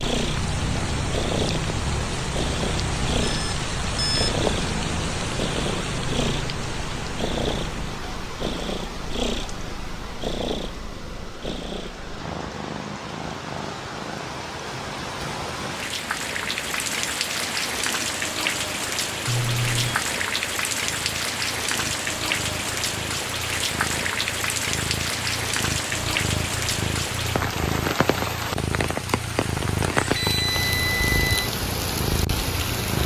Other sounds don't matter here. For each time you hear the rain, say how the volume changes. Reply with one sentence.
The rain can be heard from 0.0 to 33.0 s, getting quieter then louder.